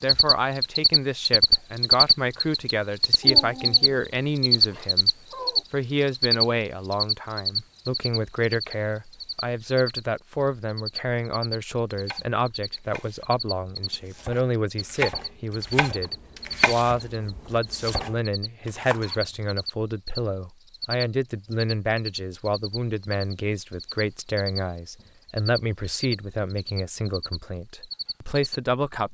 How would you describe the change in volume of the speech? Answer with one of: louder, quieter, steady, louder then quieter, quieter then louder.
steady.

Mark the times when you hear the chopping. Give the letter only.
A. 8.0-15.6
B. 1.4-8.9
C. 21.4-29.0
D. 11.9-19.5
D.